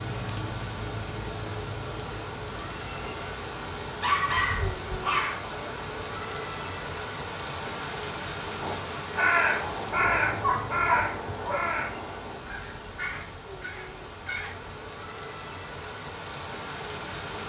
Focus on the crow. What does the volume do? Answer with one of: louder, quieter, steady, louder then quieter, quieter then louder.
quieter.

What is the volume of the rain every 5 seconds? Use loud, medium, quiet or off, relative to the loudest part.
loud, loud, medium, loud.